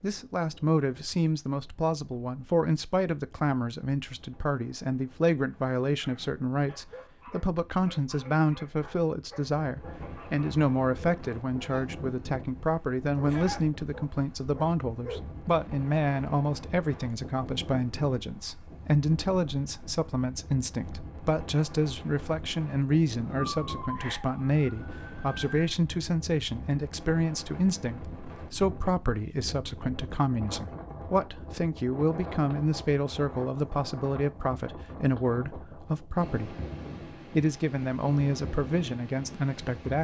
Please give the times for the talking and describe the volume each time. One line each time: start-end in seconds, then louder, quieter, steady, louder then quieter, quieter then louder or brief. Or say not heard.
0.0-36.5 steady
37.3-39.9 brief.